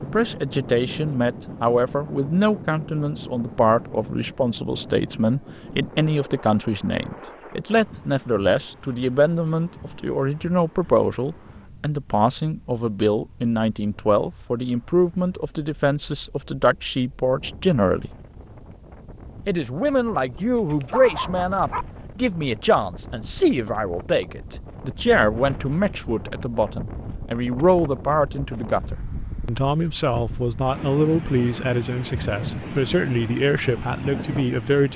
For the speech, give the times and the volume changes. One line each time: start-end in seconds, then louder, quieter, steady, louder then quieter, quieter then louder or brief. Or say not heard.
0.0-18.1 steady
19.4-34.9 steady.